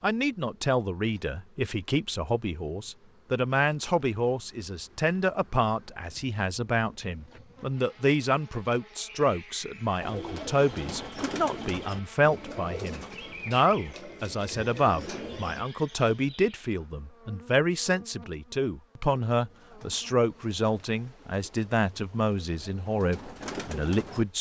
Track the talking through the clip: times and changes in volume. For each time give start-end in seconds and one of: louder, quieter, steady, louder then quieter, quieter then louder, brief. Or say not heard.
0.0-24.3 steady.